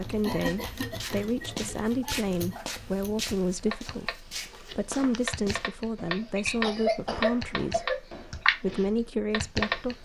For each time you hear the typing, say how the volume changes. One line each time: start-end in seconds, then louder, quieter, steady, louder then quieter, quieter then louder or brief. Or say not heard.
0.0-9.9 louder.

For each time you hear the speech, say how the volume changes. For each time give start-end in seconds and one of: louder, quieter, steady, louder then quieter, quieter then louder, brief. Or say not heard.
0.0-10.0 steady.